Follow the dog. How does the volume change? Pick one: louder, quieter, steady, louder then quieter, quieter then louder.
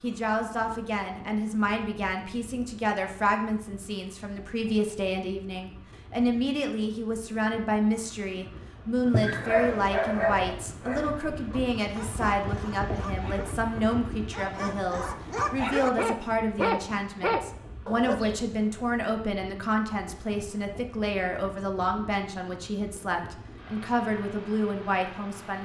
quieter then louder.